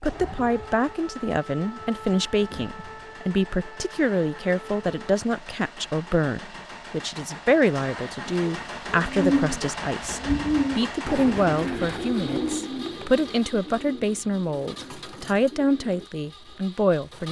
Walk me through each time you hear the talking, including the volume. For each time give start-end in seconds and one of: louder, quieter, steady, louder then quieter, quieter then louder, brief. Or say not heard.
0.0-17.2 steady.